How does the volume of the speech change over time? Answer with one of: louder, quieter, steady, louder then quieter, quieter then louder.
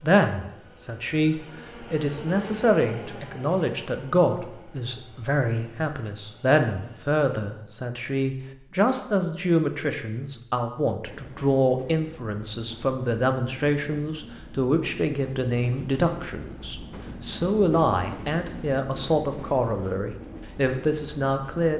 steady.